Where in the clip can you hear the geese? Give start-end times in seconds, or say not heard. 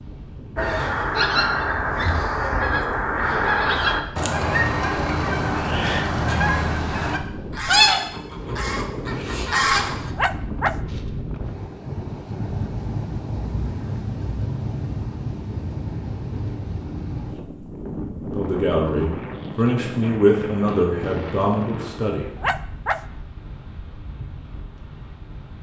0.6-10.1.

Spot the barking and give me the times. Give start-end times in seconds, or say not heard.
10.2-10.8, 22.4-23.0.